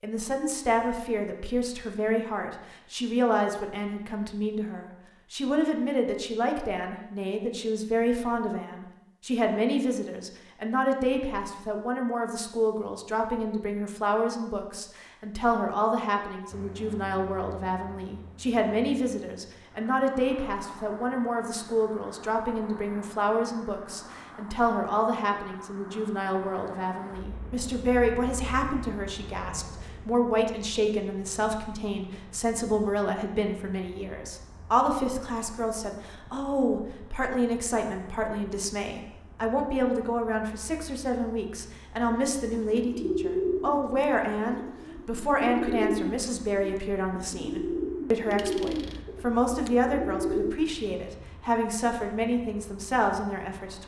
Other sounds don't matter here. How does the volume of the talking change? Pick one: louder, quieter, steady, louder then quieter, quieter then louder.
steady.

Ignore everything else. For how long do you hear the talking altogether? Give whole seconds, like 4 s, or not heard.
54 s.